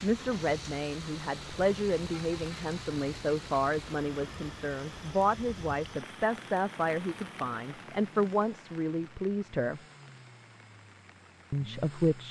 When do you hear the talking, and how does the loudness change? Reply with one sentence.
The talking can be heard from 0.0 to 9.8 s, at a steady volume; and briefly from 11.5 to 12.2 s.